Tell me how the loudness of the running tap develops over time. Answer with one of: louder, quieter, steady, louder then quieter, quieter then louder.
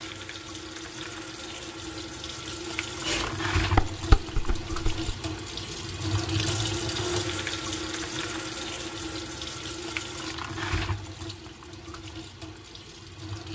louder then quieter.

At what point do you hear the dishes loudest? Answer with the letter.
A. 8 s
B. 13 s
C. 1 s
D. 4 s
D.